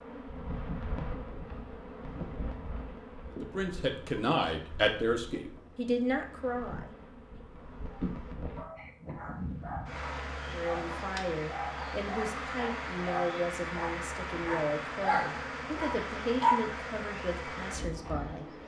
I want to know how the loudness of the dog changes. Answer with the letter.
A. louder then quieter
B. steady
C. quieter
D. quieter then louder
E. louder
E.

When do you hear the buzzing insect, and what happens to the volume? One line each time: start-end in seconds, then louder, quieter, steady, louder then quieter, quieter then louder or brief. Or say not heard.
0.0-18.6 quieter then louder.